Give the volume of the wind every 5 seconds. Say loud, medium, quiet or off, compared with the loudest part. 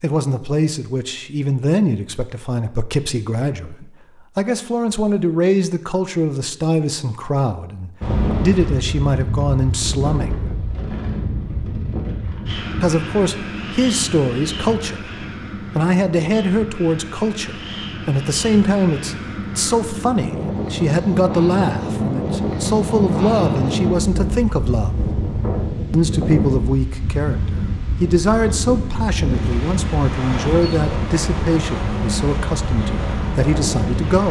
off, loud, medium, medium, loud, loud, loud.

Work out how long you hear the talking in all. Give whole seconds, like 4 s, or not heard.
31 s.